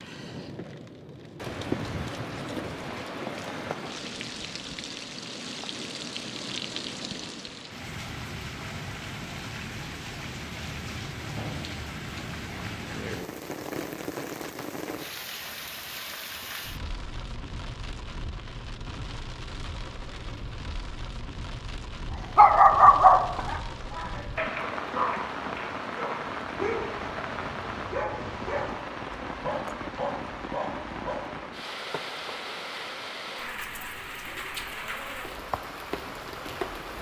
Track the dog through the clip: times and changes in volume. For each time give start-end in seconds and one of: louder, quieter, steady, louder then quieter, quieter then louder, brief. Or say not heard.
22.4-31.2 quieter.